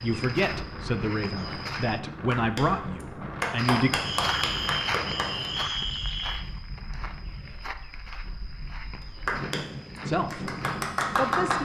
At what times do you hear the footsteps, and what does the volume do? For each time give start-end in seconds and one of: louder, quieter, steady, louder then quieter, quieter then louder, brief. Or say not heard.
0.0-2.0 brief
3.5-11.5 quieter.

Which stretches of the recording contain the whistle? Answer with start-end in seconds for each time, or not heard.
4.0-6.3.